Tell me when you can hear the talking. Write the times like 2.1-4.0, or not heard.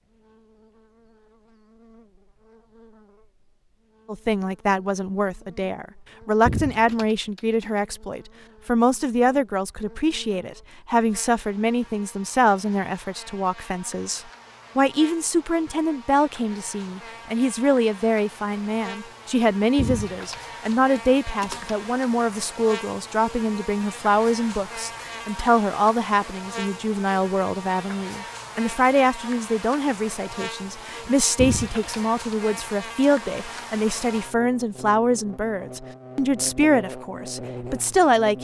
4.0-38.3.